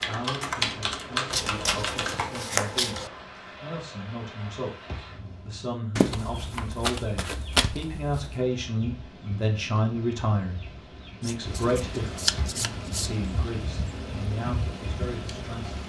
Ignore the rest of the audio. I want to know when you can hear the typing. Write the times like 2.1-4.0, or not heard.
0.0-2.4.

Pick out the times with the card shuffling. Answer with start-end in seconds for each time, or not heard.
1.3-3.1, 6.0-8.4, 11.2-13.1.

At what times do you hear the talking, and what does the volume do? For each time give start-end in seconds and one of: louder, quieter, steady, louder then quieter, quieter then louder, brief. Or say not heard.
0.0-15.8 louder then quieter.